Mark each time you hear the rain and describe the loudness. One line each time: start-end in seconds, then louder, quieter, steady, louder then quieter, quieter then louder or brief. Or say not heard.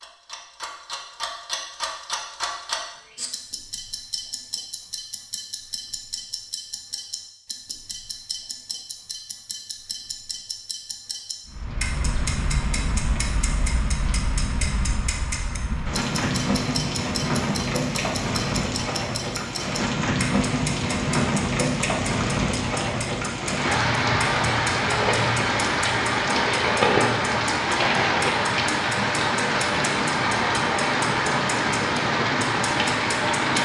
11.4-33.5 louder.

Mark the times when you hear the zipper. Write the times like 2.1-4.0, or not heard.
not heard.